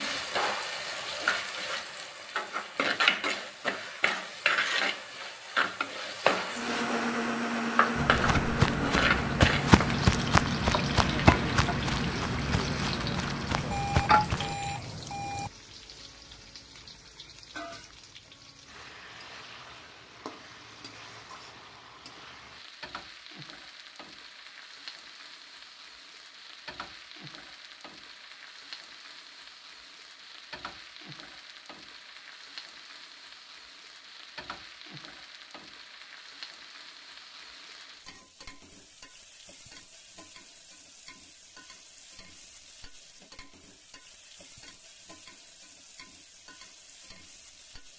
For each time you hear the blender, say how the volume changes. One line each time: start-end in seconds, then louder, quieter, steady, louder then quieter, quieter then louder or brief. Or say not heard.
6.5-13.6 quieter.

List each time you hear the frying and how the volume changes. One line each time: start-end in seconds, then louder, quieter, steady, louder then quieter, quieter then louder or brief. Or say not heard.
0.0-47.9 quieter.